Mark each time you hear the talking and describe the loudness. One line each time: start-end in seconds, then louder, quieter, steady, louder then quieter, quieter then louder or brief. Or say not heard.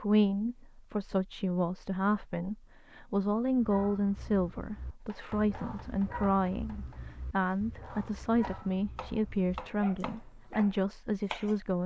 0.0-11.8 steady.